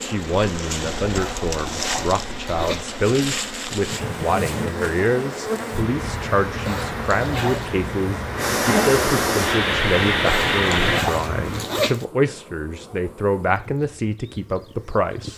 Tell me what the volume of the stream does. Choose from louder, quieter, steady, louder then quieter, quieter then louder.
louder.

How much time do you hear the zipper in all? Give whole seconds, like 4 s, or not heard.
5 s.